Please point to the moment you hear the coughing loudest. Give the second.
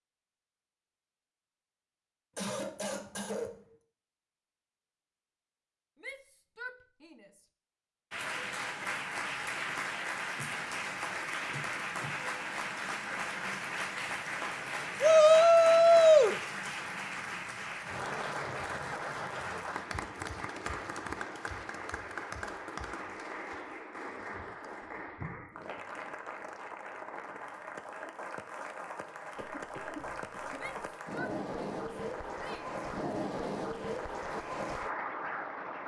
3 s.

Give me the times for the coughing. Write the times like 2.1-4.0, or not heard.
2.4-3.8, 29.4-30.9.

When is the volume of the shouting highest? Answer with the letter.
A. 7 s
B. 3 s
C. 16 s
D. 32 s
C.